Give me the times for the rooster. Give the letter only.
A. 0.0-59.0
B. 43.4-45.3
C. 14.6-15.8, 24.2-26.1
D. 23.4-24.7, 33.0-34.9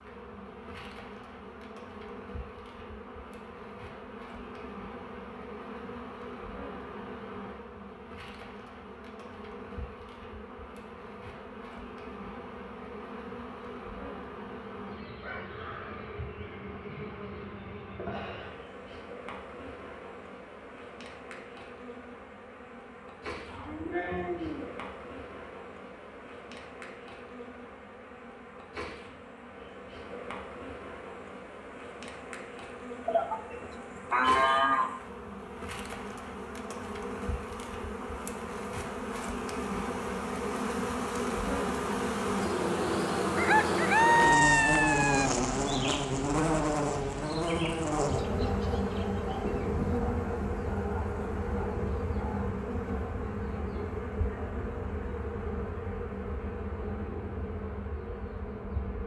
B.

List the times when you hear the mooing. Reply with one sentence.
The mooing can be heard from 23.4 to 24.7 s and from 33.0 to 34.9 s.